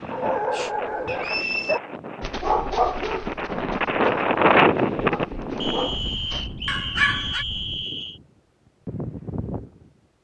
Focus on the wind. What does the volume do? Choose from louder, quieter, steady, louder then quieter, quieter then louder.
louder then quieter.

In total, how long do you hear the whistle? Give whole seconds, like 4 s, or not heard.
3 s.